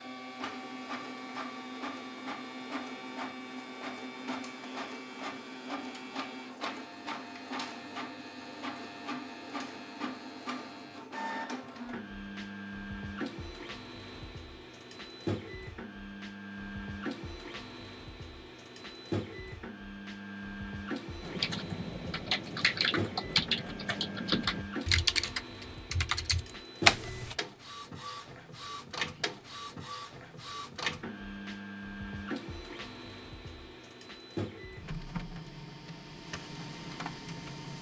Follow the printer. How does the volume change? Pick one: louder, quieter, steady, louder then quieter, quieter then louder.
steady.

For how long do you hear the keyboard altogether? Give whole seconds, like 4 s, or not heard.
6 s.